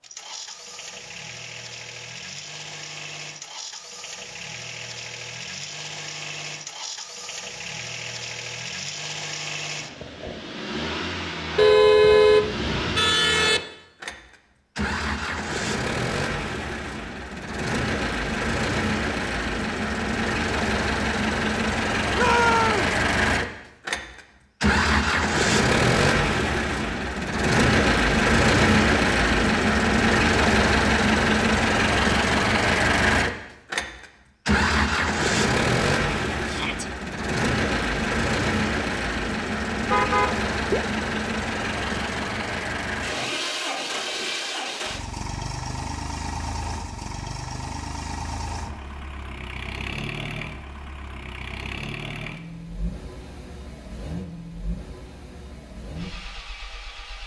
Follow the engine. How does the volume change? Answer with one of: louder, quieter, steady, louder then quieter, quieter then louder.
louder then quieter.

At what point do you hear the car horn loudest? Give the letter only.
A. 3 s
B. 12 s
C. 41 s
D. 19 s
B.